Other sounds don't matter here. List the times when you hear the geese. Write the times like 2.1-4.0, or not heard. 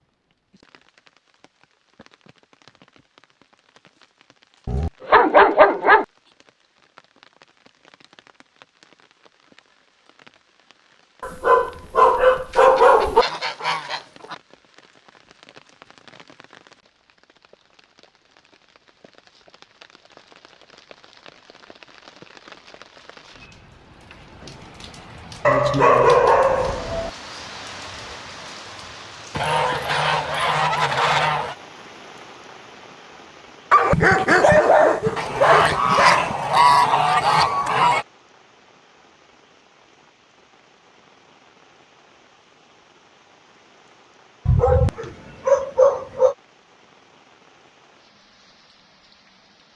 12.5-14.3, 29.3-31.6, 35.1-38.0.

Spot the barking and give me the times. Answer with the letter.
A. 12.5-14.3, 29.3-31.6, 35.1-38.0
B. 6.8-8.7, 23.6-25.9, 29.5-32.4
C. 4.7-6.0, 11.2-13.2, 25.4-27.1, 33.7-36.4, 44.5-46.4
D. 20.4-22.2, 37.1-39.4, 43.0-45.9
C.